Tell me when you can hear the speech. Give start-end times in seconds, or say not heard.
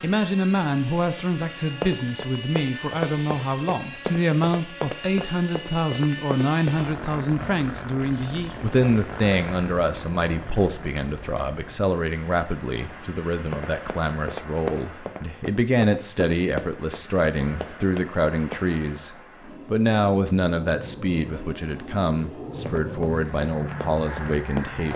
0.0-24.9.